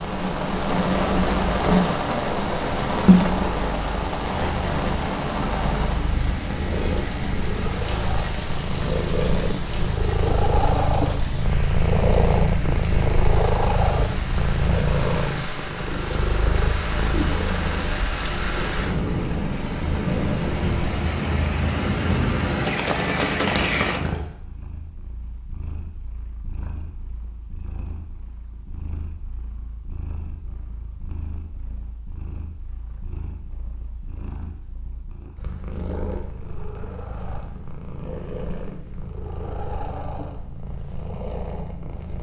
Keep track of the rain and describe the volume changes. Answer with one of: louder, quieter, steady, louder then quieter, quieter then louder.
quieter then louder.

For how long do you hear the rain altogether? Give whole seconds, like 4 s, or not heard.
24 s.